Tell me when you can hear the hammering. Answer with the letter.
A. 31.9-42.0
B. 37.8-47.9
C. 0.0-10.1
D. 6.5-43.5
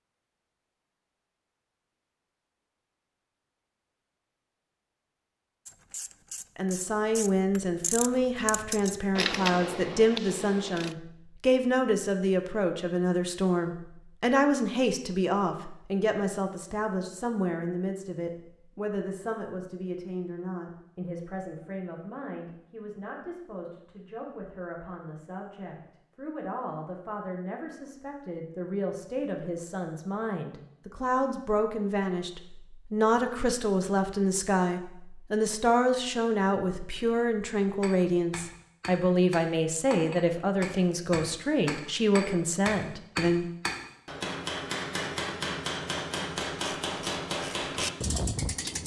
B.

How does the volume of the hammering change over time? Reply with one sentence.
The volume of the hammering goes up.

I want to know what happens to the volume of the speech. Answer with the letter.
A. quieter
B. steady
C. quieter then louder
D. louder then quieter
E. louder
C.